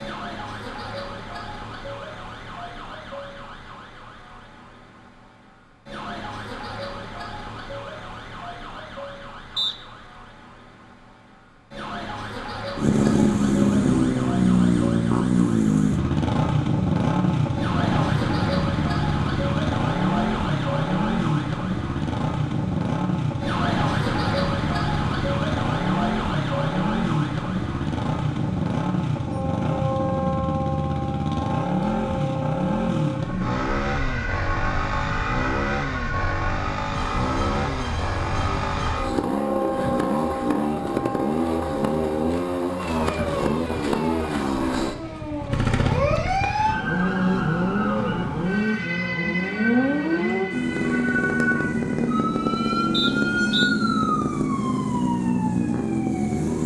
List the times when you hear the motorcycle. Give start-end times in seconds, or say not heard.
12.8-56.6.